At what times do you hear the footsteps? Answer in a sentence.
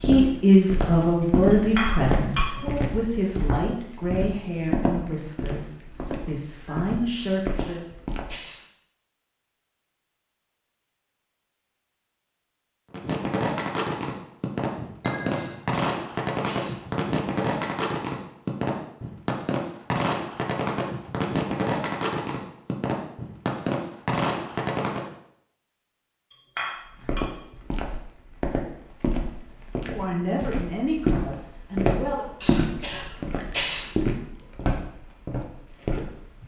The footsteps can be heard from 0.0 to 8.4 s and from 26.9 to 36.4 s.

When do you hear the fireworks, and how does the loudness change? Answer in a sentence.
You can hear the fireworks from 12.9 to 25.1 s, at a steady volume.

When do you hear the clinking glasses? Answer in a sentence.
The clinking glasses can be heard from 1.5 to 2.8 s, from 15.0 to 15.7 s and from 26.3 to 27.2 s.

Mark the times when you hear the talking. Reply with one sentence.
You can hear the talking from 0.0 to 7.8 s and from 29.9 to 32.2 s.